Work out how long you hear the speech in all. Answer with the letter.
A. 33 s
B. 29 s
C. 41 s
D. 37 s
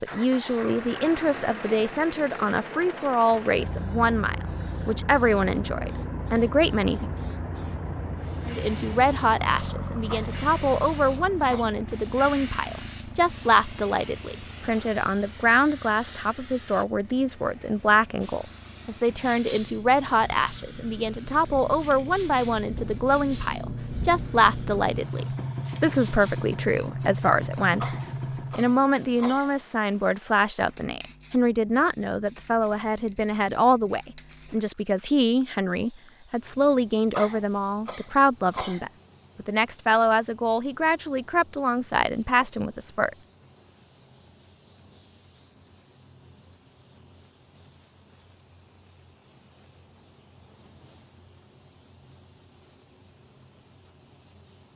C.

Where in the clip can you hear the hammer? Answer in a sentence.
The hammer can't be heard in this clip.